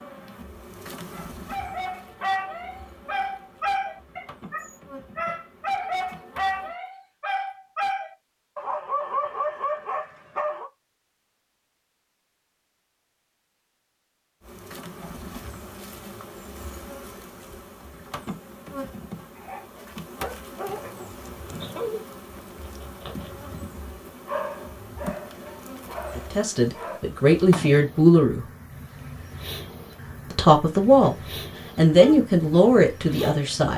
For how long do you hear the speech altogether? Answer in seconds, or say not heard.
5 s.